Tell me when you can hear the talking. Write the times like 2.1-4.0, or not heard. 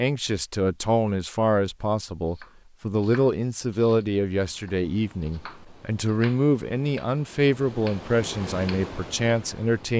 0.0-9.9.